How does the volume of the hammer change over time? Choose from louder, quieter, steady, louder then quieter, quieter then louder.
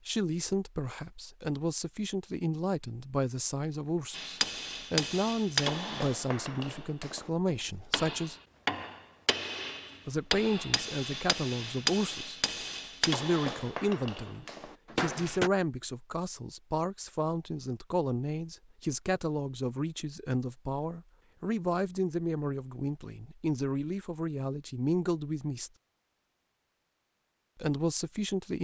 steady.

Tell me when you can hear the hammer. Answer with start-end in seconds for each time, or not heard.
4.1-15.5.